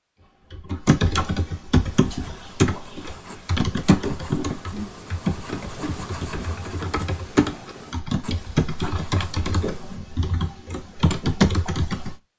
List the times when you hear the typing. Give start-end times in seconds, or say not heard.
0.2-12.2.